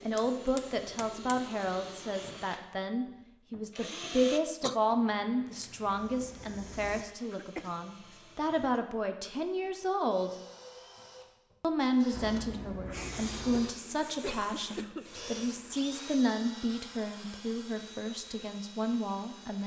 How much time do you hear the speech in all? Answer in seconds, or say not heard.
18 s.